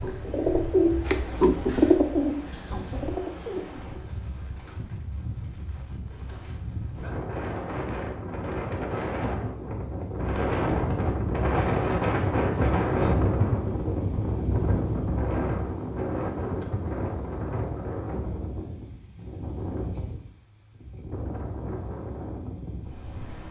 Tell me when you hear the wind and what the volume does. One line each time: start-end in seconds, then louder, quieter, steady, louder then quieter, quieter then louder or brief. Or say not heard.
0.0-23.4 louder then quieter.